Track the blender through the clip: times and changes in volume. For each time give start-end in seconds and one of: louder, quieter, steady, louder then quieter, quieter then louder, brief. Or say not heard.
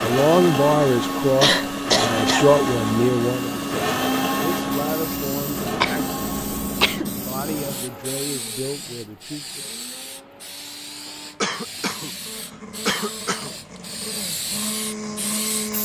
0.0-15.8 quieter then louder.